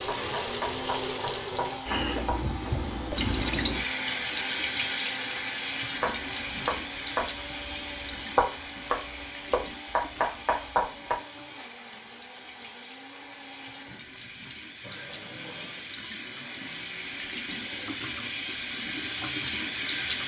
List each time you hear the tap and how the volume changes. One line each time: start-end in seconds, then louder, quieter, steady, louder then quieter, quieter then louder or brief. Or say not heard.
0.0-20.2 quieter then louder.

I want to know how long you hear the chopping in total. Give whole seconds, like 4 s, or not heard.
8 s.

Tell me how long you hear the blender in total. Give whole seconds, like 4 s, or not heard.
18 s.